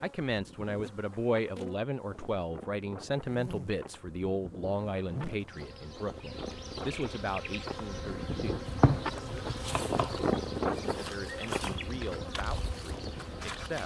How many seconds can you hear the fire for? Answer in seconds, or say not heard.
not heard.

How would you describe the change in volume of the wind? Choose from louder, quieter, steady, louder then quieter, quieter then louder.
louder then quieter.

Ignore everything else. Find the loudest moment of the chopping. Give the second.
9 s.